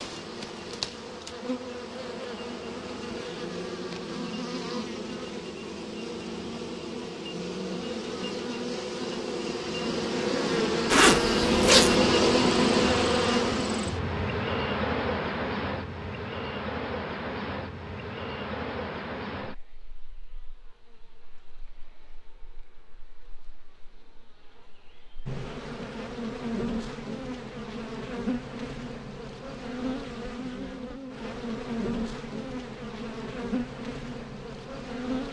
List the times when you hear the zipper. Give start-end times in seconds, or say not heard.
10.9-12.0.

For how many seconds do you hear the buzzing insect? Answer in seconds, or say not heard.
35 s.